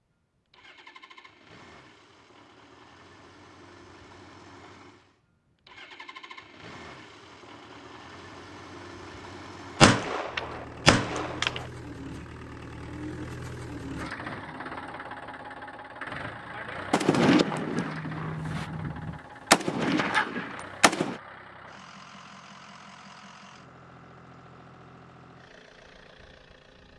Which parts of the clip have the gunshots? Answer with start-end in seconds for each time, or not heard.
9.8-11.7, 16.9-21.2.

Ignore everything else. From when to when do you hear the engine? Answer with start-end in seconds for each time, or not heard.
0.0-26.9.